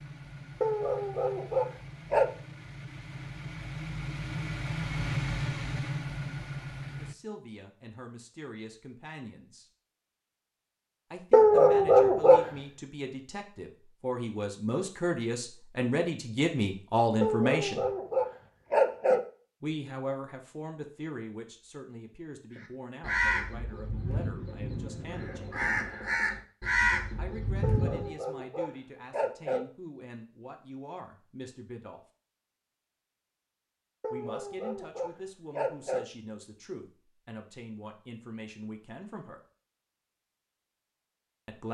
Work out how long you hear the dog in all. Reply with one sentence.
You can hear the dog for 9 seconds altogether.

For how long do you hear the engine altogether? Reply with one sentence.
The engine can be heard for 7 seconds in total.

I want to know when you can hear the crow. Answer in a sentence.
The crow can be heard from 22.6 to 28.1 s.